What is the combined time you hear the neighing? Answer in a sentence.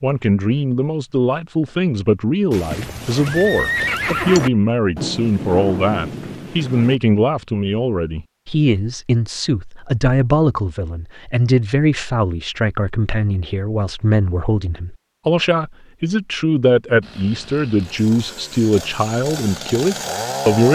The neighing can be heard for 2 seconds in total.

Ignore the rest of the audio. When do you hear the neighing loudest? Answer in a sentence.
The loudest moment of the neighing is at 4 seconds.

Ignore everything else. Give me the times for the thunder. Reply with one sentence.
You can hear the thunder from 5.0 to 7.0 s.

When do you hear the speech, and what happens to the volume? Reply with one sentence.
You can hear the speech from 0.0 to 20.7 s, at a steady volume.